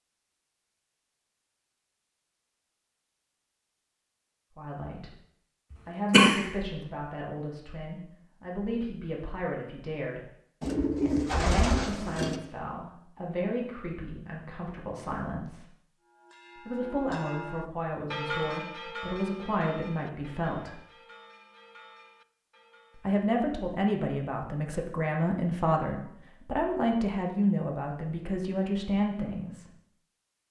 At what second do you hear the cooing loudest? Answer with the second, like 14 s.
11 s.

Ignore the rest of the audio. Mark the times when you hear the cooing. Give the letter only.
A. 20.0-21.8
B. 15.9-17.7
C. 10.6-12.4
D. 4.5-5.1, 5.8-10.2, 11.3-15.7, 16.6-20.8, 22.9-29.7
C.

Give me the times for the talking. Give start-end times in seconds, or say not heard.
4.5-5.1, 5.8-10.2, 11.3-15.7, 16.6-20.8, 22.9-29.7.